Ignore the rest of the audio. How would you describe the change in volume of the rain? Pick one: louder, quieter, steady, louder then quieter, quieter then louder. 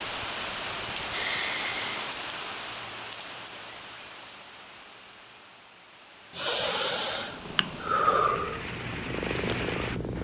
quieter then louder.